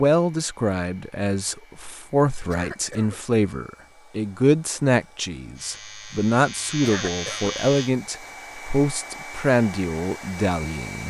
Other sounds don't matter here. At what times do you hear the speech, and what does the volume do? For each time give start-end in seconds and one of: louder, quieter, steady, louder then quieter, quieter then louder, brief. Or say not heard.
0.0-11.0 steady.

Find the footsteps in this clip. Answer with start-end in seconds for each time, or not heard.
not heard.